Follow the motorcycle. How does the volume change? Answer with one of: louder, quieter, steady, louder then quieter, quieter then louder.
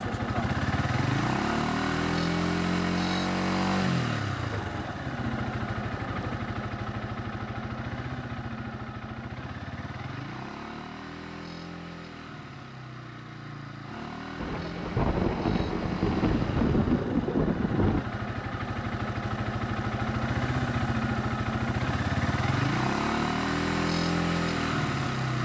quieter then louder.